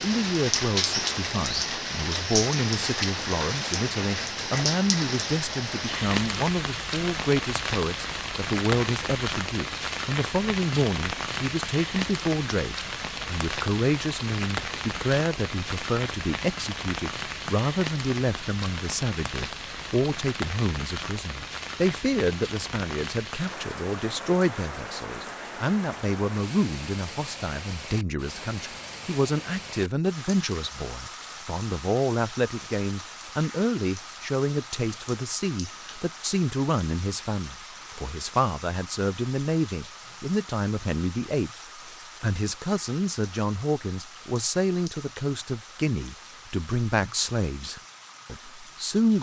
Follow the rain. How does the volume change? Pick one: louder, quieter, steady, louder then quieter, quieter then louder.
quieter.